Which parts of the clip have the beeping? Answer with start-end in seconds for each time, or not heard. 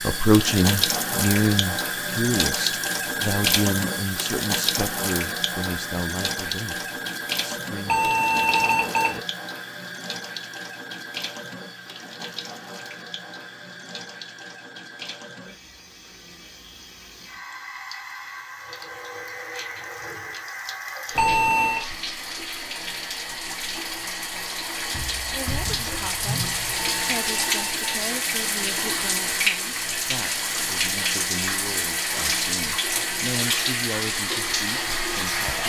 7.8-9.2, 21.1-21.9, 26.8-28.0.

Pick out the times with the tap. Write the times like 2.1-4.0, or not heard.
0.0-35.6.